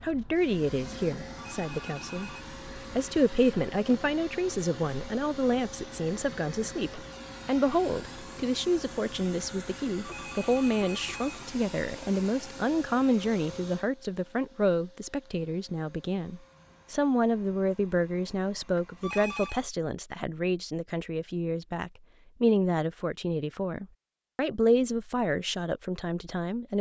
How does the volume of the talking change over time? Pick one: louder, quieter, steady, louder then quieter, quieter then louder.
steady.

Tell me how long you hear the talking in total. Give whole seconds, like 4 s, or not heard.
27 s.